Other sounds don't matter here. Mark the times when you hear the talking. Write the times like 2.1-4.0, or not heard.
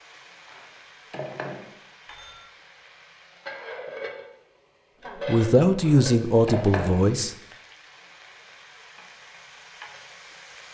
5.2-7.3.